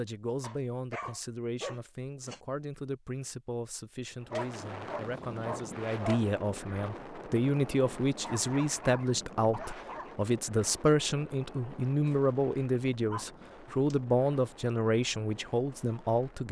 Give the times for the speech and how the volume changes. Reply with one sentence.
You can hear the speech from 0.0 to 16.4 s, getting louder.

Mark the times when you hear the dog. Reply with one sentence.
The dog can be heard from 0.4 to 2.4 s, from 4.3 to 6.2 s, from 8.2 to 10.2 s and from 13.1 to 13.9 s.